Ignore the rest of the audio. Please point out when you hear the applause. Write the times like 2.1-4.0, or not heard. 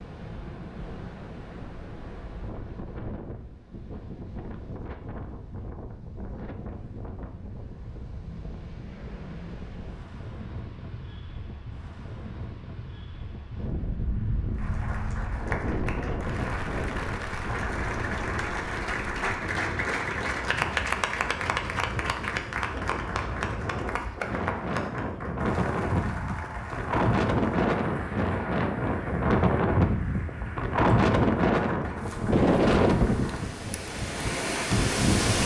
14.5-33.6.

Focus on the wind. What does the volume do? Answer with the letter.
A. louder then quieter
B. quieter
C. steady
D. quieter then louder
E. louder
E.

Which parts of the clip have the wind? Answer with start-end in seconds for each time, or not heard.
0.0-35.4.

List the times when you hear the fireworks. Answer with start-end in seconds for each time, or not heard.
not heard.